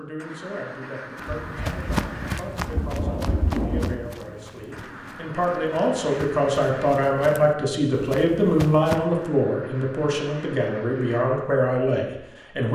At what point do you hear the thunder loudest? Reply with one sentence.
The volume of the thunder peaks at 4 seconds.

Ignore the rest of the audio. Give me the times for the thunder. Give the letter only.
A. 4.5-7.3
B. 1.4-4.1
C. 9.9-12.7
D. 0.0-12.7
B.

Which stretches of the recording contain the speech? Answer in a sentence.
The speech can be heard from 0.0 to 12.7 s.